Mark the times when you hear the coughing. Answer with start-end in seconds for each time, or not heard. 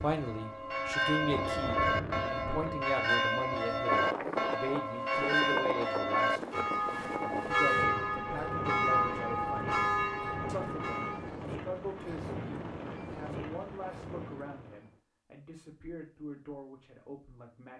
not heard.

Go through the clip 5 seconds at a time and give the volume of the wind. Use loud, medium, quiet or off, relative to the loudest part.
loud, loud, loud, off.